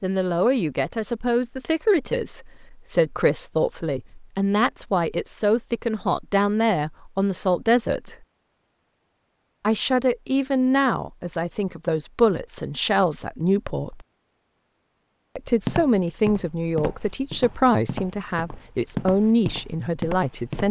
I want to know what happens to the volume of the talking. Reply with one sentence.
The volume of the talking stays about the same.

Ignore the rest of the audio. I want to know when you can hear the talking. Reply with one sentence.
You can hear the talking from 0.0 to 8.2 s, from 9.6 to 14.1 s and from 15.3 to 20.6 s.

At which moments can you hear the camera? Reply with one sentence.
The camera can't be heard in this clip.